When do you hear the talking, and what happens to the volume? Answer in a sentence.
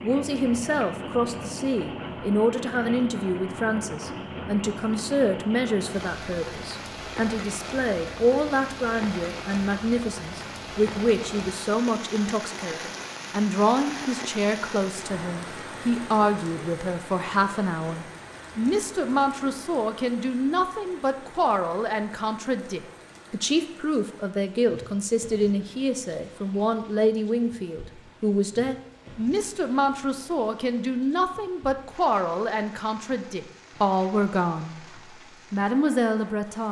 You can hear the talking from 0.0 to 34.8 s, at a steady volume; and briefly from 35.5 to 36.6 s.